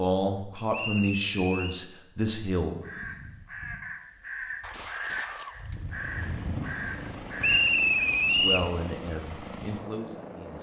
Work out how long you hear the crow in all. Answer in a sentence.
You can hear the crow for 5 seconds altogether.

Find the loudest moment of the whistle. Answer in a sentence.
The loudest moment of the whistle is at 8 seconds.